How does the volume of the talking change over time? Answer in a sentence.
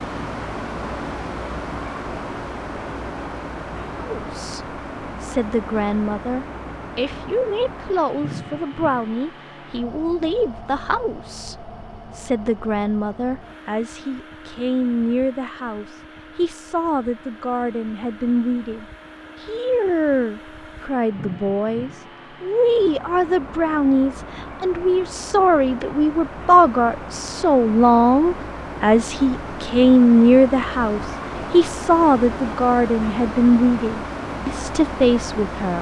The loudness of the talking goes up.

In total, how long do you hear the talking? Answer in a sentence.
The talking can be heard for 32 seconds in total.